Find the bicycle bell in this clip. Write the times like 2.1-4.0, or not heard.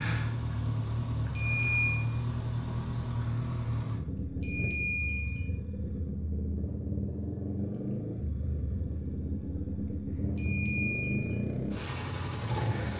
1.4-1.9, 4.4-5.5, 10.3-11.4.